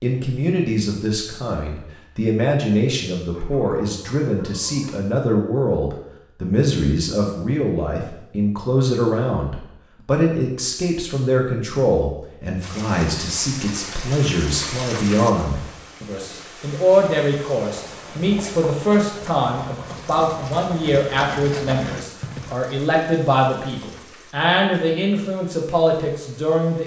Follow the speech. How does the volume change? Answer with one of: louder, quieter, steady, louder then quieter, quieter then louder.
steady.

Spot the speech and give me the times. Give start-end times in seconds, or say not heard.
0.0-26.8.